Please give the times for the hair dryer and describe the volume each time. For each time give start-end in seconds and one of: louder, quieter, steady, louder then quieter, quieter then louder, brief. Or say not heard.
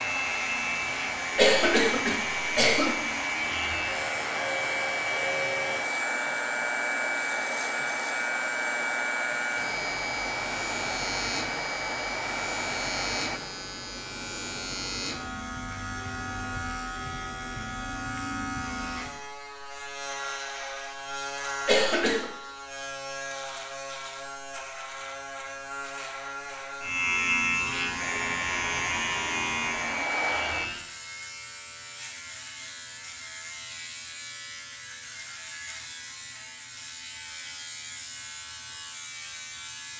0.0-13.4 steady
27.9-30.7 brief.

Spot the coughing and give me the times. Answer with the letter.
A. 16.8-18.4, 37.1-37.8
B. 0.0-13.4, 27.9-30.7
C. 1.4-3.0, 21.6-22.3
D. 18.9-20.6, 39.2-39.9
C.